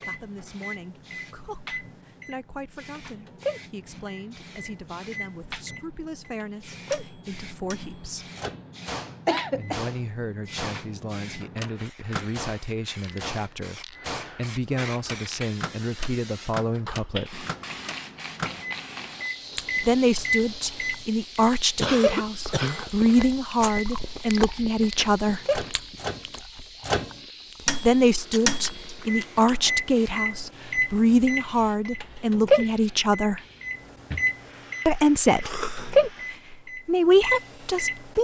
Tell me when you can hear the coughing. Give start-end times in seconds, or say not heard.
9.2-9.9, 21.8-22.9, 35.4-35.9.